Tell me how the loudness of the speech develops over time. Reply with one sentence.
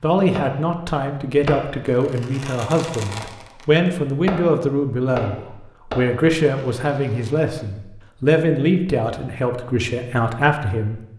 The volume of the speech stays about the same.